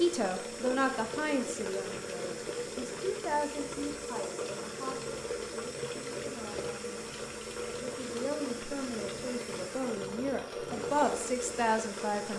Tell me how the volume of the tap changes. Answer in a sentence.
The volume of the tap stays about the same.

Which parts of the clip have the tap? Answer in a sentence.
You can hear the tap from 0.0 to 12.3 s.